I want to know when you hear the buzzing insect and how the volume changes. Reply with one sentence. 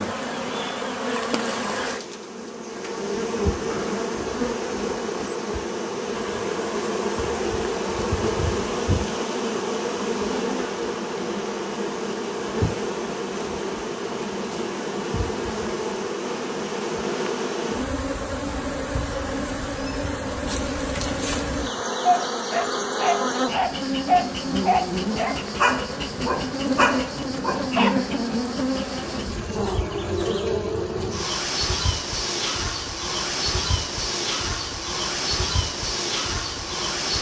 The buzzing insect can be heard from 0.0 to 37.1 s, at a steady volume.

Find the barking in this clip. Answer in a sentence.
You can hear the barking from 22.0 to 28.1 s.